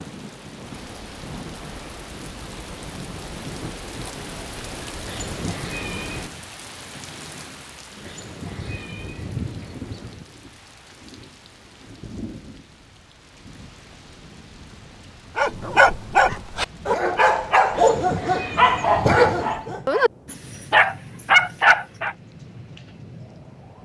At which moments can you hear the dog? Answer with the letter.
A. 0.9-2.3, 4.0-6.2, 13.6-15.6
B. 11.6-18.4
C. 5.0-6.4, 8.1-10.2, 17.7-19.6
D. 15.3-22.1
D.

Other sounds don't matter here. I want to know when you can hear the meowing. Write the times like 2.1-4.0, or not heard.
5.0-6.4, 8.1-10.2, 17.7-19.6.